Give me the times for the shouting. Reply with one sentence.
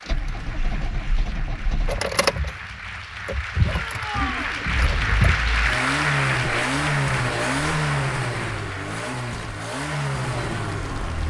You can hear the shouting from 3.6 to 4.5 s.